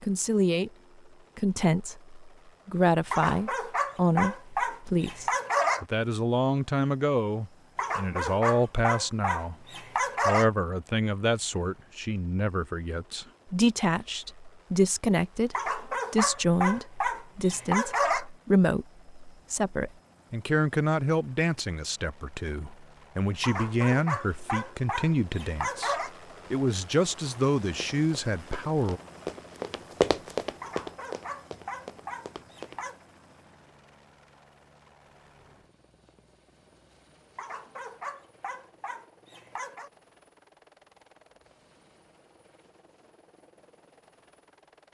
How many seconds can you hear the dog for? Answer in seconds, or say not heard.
16 s.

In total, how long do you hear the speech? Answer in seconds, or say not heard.
28 s.